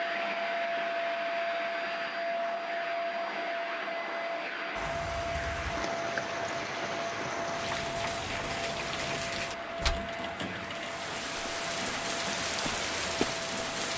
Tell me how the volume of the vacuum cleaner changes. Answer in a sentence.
The loudness of the vacuum cleaner goes down.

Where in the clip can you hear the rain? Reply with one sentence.
The rain can be heard from 4.8 to 13.9 s.